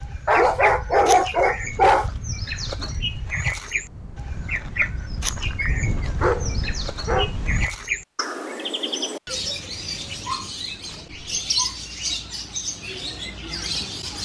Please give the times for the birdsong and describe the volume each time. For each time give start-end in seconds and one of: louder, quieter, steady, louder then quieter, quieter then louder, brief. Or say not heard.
0.0-14.1 steady.